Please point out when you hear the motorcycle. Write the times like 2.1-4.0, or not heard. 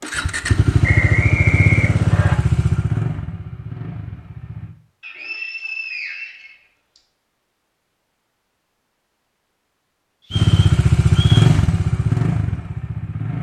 0.0-4.8, 10.3-13.3.